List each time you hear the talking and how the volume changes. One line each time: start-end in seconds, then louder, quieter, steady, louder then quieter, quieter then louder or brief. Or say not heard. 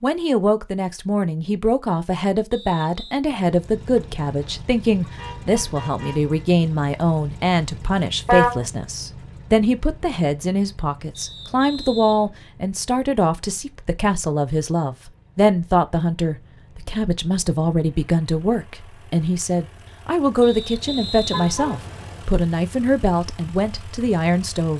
0.0-24.7 steady.